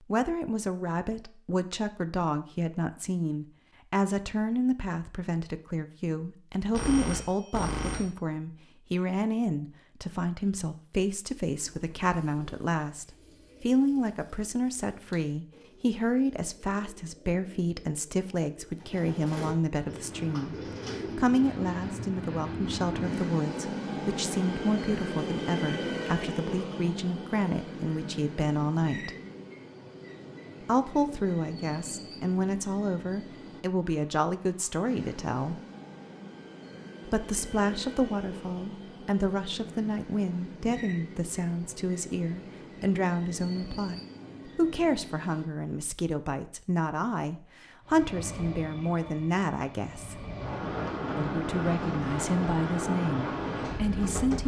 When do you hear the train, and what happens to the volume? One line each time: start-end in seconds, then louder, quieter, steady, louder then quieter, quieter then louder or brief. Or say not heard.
19.8-45.7 quieter
47.9-54.4 louder.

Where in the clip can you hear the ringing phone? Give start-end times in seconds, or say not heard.
6.7-8.1.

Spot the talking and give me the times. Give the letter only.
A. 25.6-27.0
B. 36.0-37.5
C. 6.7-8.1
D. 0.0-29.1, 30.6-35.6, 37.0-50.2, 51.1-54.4
D.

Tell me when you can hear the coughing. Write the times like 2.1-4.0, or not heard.
not heard.